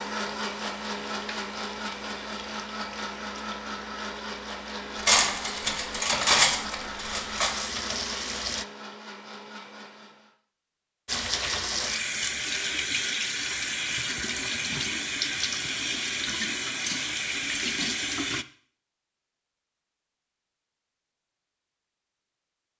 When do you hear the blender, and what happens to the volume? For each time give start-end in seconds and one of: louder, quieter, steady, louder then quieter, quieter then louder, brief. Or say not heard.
0.0-10.3 quieter.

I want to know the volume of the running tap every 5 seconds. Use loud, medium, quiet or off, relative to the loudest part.
quiet, medium, loud, loud, off.